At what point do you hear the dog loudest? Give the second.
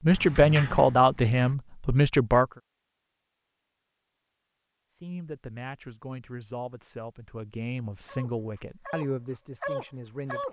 10 s.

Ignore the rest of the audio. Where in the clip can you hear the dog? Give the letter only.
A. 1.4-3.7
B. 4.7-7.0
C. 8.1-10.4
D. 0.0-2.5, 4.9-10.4
C.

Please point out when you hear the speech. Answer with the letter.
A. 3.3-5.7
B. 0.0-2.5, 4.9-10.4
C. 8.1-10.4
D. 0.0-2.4
B.